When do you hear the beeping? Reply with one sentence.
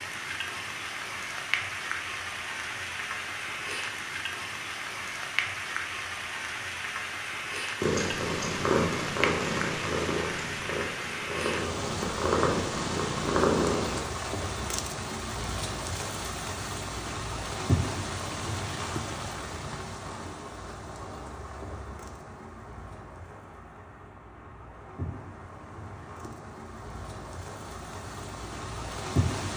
The beeping can't be heard in this clip.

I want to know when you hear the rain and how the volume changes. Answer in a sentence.
The rain can be heard from 0.0 to 29.5 s, getting quieter.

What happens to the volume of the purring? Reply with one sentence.
The loudness of the purring goes down, then up.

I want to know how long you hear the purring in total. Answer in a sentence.
The purring can be heard for 6 seconds in total.